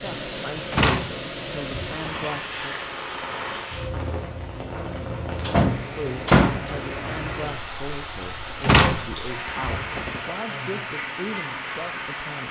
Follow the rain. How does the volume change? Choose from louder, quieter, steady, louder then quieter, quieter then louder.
steady.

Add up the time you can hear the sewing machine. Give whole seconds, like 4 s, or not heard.
not heard.